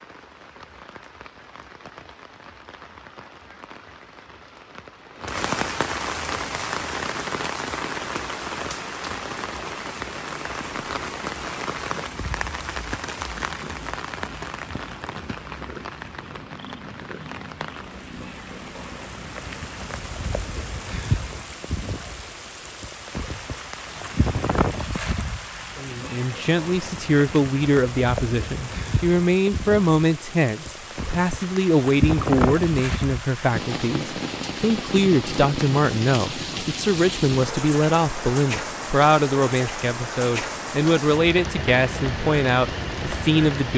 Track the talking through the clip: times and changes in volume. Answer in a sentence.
You can hear the talking from 25.8 to 43.7 s, at a steady volume.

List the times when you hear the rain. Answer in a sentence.
The rain can be heard from 0.0 to 43.7 s.